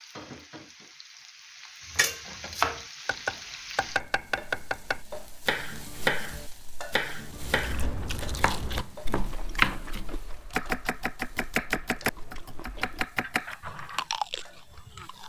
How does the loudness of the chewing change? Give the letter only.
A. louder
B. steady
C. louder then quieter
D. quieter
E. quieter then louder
E.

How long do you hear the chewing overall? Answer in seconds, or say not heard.
8 s.